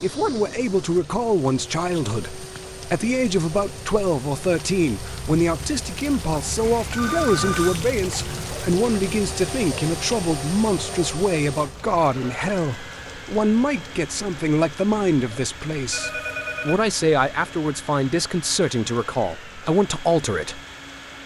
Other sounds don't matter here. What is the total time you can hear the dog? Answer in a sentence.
The dog can't be heard in this clip.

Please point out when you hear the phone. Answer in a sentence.
The phone can be heard from 6.6 to 7.8 s and from 15.9 to 16.9 s.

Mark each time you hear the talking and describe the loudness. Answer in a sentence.
You can hear the talking from 0.0 to 20.6 s, at a steady volume.